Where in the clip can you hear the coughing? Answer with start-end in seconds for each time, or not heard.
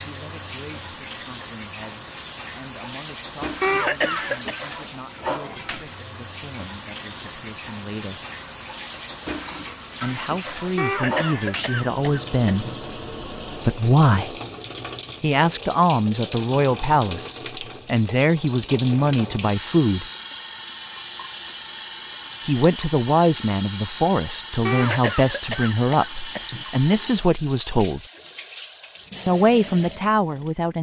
3.6-4.6, 10.8-12.8, 24.6-26.6.